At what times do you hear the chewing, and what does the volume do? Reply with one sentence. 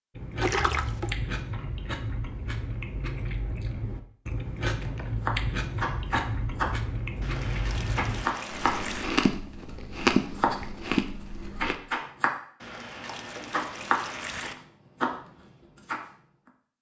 The chewing can be heard from 0.1 to 11.8 s, getting louder.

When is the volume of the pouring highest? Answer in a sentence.
The volume of the pouring peaks at 1 second.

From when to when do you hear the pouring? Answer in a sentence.
You can hear the pouring from 0.4 to 1.1 s, from 7.2 to 9.1 s and from 12.6 to 14.6 s.